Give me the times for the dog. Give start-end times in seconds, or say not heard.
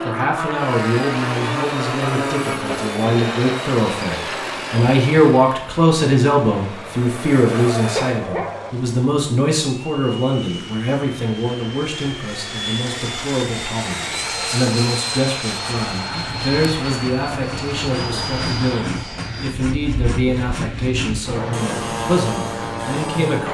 7.5-8.7.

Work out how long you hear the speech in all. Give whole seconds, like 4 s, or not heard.
23 s.